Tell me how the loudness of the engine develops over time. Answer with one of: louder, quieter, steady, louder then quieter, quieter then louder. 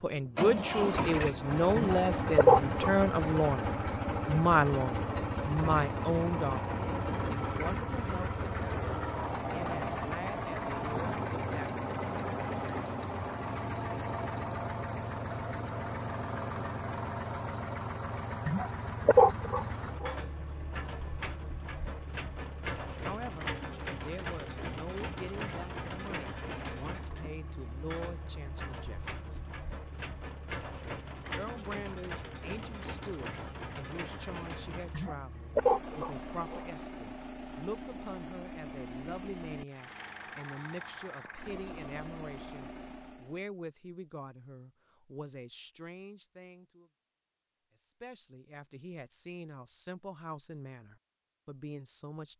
quieter.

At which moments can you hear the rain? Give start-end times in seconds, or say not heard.
not heard.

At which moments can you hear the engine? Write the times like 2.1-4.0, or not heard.
0.1-43.5.